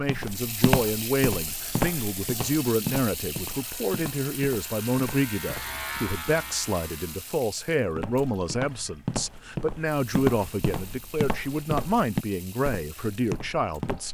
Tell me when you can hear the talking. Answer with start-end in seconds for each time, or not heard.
0.0-14.0.